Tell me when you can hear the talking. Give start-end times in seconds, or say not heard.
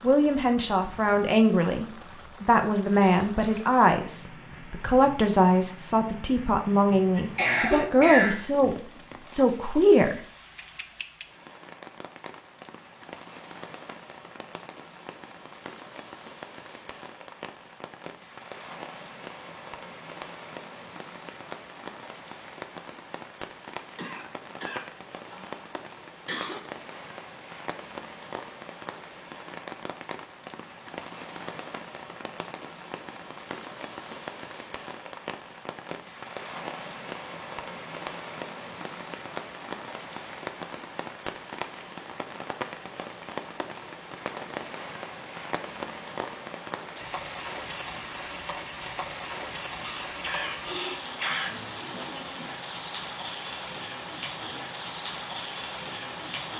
0.0-10.2.